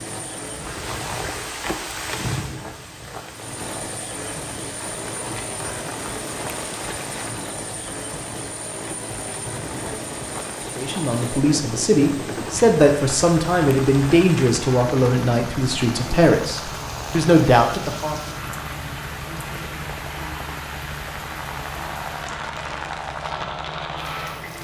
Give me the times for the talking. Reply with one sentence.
You can hear the talking from 10.8 to 18.1 s.